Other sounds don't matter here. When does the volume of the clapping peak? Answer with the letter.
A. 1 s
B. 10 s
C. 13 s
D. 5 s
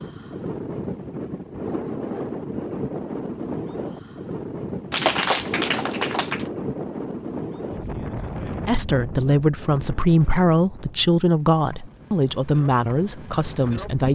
D.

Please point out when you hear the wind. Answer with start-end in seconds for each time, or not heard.
0.0-14.0.